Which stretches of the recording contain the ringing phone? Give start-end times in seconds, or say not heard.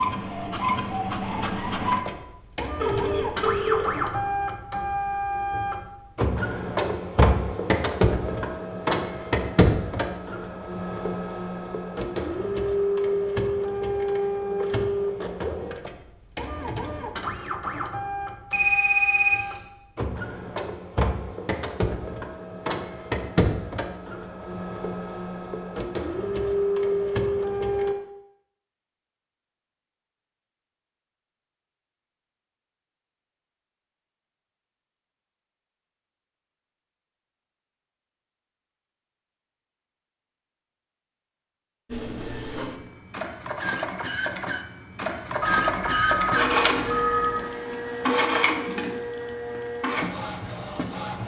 2.8-4.0, 18.5-19.6, 45.4-47.5.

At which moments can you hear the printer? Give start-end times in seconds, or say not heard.
0.0-27.9, 41.9-51.2.